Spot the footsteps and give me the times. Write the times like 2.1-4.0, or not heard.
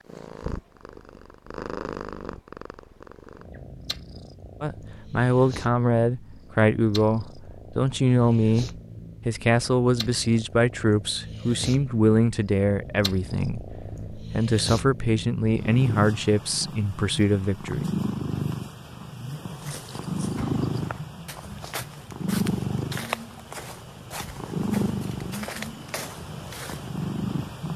19.6-26.9.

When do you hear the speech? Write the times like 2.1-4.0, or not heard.
4.6-17.9.